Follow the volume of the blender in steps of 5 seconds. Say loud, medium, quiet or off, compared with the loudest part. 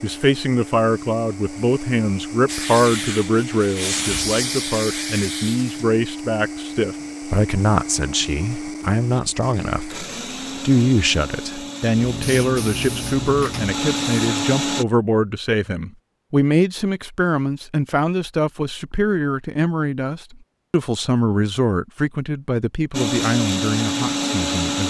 medium, medium, medium, off, loud.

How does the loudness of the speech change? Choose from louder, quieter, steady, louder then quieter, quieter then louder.
steady.